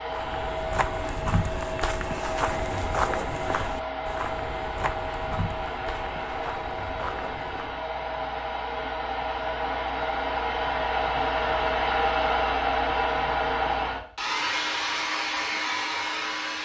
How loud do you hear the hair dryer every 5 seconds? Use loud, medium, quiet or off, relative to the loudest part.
medium, medium, loud, loud.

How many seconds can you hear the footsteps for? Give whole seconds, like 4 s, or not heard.
8 s.